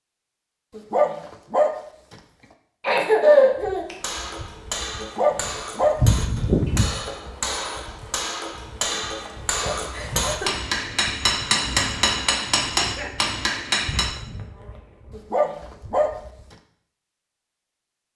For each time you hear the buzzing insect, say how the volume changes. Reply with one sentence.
You can hear the buzzing insect from 3.6 to 16.4 s, getting quieter.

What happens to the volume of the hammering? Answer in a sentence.
The loudness of the hammering goes up.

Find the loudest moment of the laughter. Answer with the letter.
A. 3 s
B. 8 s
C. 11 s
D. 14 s
A.